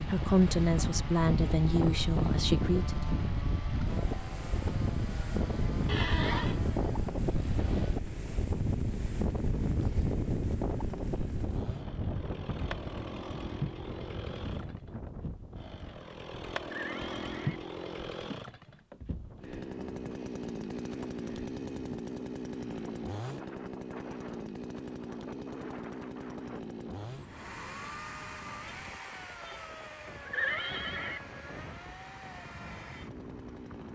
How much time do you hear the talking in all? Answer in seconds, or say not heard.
3 s.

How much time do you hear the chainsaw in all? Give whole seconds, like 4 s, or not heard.
34 s.